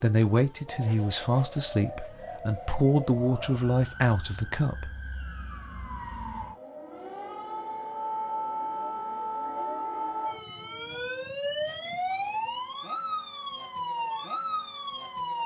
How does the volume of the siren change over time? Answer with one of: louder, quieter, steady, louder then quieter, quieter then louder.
louder.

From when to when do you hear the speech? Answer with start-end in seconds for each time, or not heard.
0.0-5.0.